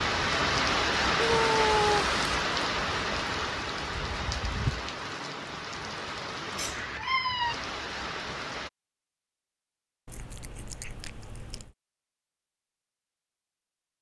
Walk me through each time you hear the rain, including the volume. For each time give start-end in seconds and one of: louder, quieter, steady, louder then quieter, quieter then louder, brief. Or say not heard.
0.0-8.7 quieter.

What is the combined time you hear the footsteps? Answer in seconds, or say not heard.
not heard.